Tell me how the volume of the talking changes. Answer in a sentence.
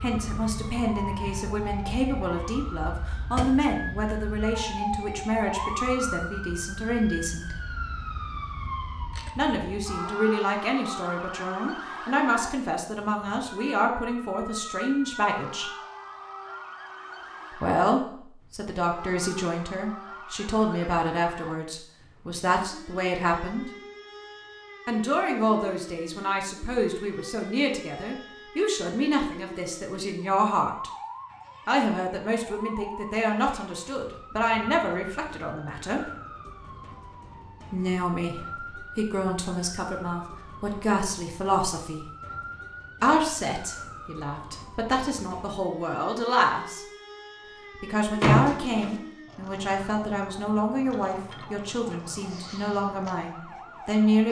The volume of the talking stays about the same.